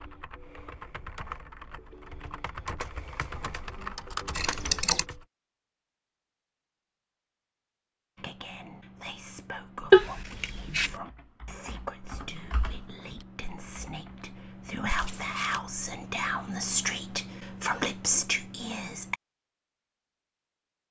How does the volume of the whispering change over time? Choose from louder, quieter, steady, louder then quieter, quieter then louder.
louder.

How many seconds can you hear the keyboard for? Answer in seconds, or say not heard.
9 s.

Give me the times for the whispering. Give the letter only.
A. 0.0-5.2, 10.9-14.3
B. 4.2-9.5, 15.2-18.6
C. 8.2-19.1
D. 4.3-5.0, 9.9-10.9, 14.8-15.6
C.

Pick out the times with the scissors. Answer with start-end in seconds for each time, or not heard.
4.3-5.0, 9.9-10.9, 14.8-15.6.